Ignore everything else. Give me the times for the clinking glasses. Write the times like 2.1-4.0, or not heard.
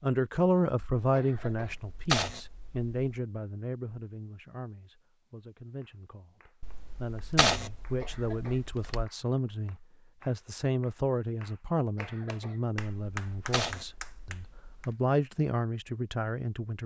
not heard.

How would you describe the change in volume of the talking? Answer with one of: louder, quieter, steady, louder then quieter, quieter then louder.
quieter then louder.